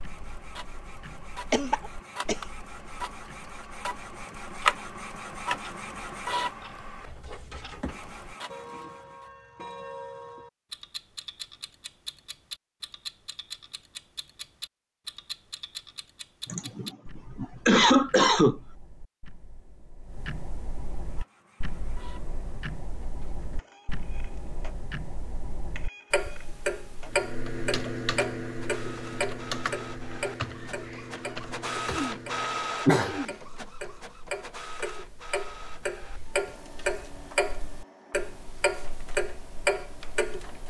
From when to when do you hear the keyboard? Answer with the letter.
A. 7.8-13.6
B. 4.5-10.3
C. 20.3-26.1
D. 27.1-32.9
D.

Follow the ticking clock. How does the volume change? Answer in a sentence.
The loudness of the ticking clock goes up.